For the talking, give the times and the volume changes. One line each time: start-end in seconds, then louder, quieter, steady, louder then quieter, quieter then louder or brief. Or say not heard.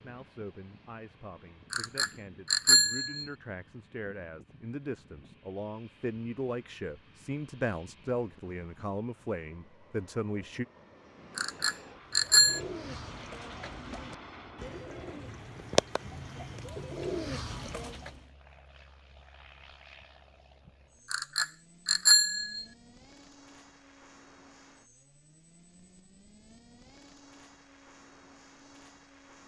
0.0-10.7 louder.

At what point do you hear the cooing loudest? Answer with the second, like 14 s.
16 s.